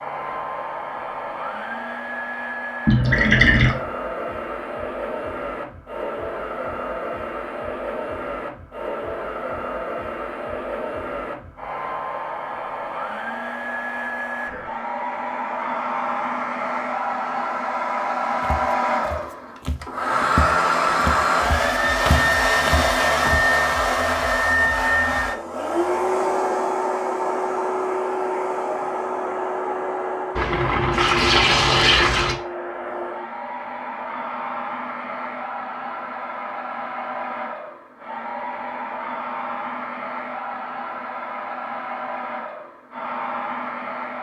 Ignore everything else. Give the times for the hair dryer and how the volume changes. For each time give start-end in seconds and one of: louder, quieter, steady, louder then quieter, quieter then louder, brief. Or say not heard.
0.0-44.1 louder then quieter.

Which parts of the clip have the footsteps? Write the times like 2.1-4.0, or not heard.
18.4-23.4.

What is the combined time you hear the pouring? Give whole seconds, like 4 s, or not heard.
3 s.